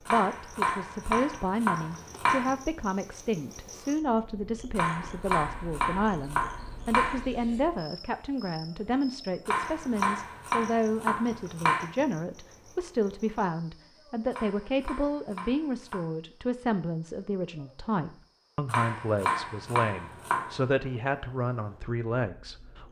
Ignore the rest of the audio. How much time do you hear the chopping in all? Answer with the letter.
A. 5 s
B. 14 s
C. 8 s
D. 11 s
D.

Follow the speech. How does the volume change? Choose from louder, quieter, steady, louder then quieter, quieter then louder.
steady.